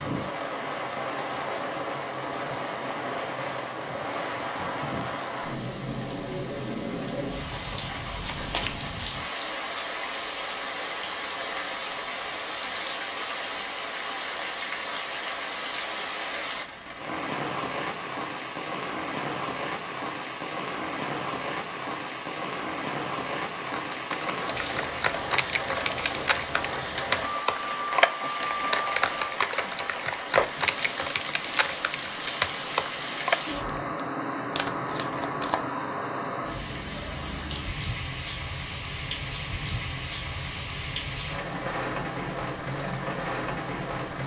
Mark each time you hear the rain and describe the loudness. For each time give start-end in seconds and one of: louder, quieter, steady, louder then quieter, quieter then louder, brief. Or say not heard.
0.0-44.2 steady.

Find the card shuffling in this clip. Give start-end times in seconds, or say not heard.
8.2-8.8, 34.5-35.7.